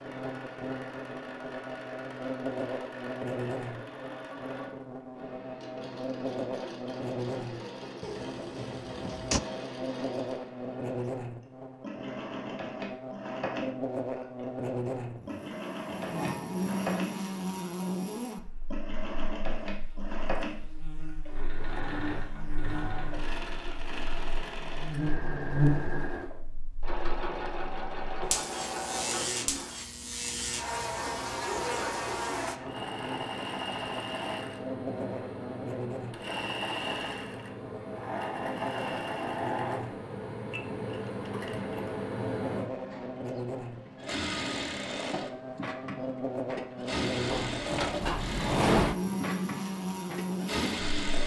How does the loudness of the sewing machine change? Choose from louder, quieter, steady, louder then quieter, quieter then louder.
louder.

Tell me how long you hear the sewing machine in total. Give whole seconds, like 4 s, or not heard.
51 s.